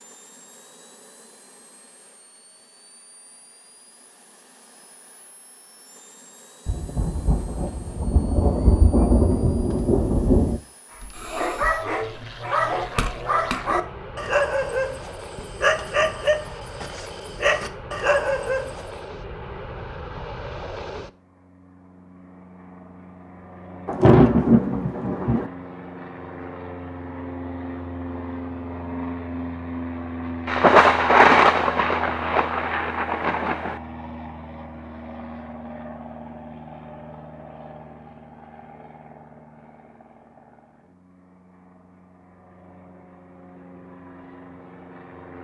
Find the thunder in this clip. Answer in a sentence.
You can hear the thunder from 6.7 to 10.6 s, from 23.9 to 25.5 s and from 30.4 to 33.8 s.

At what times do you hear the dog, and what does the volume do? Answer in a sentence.
You can hear the dog from 11.0 to 18.8 s, at a steady volume.